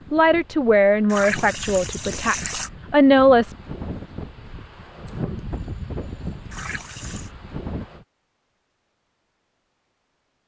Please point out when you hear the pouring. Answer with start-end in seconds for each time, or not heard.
1.1-2.7, 6.5-7.3.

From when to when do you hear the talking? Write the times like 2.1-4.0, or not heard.
0.1-3.5.